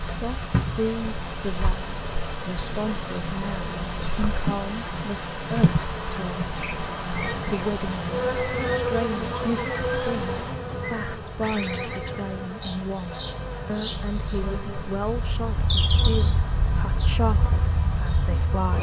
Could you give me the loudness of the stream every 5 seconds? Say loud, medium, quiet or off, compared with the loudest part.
loud, loud, medium, medium.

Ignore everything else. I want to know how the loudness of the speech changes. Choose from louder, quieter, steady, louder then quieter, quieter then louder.
steady.